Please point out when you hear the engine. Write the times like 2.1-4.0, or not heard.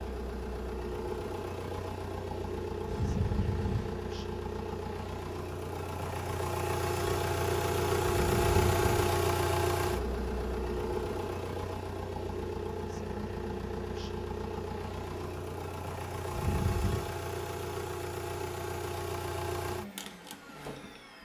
0.0-21.2.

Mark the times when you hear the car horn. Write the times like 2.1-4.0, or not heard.
2.9-4.0, 8.1-9.1, 16.3-17.1.